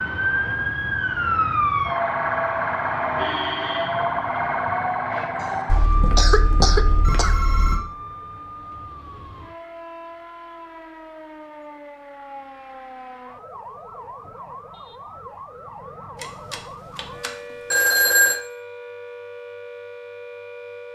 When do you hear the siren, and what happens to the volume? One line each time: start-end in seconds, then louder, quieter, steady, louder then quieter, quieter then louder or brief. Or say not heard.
0.0-20.9 quieter.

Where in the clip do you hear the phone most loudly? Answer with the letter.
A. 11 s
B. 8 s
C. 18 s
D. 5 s
C.